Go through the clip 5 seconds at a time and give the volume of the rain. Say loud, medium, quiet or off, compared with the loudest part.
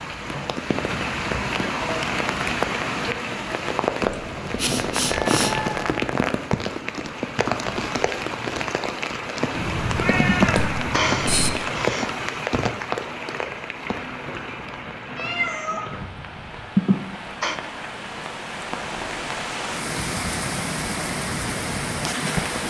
loud, loud, loud, medium, loud.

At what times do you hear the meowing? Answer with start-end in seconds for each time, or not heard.
4.0-6.0, 9.5-11.5, 15.2-15.8.